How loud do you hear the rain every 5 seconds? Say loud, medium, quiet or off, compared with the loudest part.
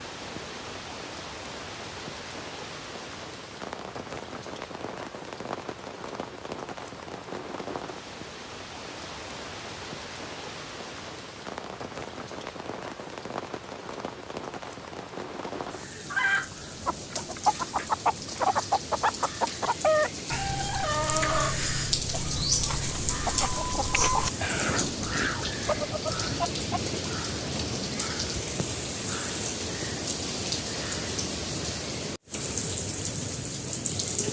medium, medium, medium, medium, loud, loud, loud.